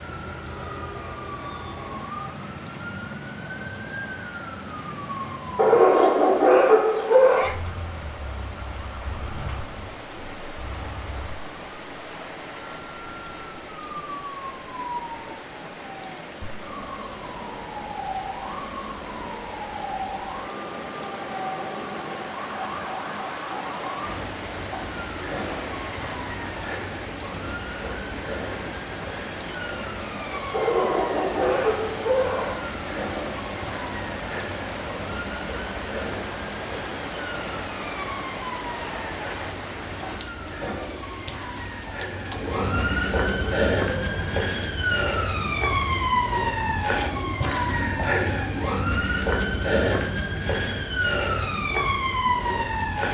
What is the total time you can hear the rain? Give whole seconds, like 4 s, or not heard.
53 s.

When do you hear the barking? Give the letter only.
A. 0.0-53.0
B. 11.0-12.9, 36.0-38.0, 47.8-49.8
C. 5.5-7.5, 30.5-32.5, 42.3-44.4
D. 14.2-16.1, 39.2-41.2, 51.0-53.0
C.